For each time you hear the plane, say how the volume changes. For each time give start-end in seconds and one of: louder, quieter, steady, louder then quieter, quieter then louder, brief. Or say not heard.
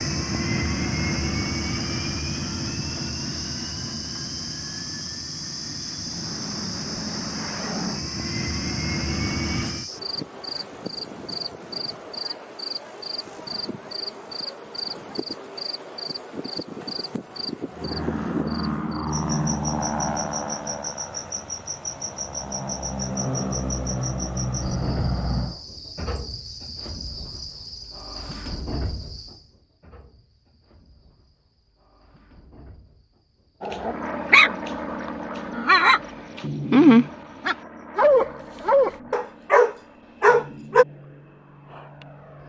0.0-9.9 quieter then louder
17.7-25.6 quieter then louder
33.8-42.4 quieter.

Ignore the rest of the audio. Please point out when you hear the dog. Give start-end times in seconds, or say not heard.
33.6-40.9.